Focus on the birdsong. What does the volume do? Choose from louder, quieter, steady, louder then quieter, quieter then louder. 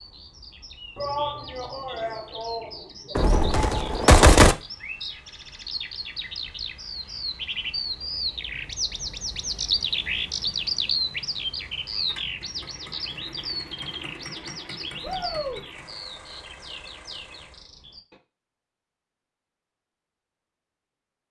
louder then quieter.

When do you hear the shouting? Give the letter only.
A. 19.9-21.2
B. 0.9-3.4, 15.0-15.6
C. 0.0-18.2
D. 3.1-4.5
B.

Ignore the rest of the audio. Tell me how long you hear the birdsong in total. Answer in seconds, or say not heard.
18 s.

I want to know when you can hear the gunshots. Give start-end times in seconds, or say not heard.
3.1-4.5.